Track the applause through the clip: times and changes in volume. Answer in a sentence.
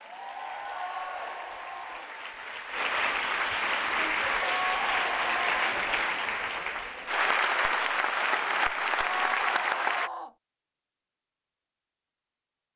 You can hear the applause from 0.0 to 10.1 s, getting louder.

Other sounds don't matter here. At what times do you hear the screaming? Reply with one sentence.
The screaming can be heard from 0.9 to 2.1 s, from 4.4 to 5.8 s and from 9.1 to 10.3 s.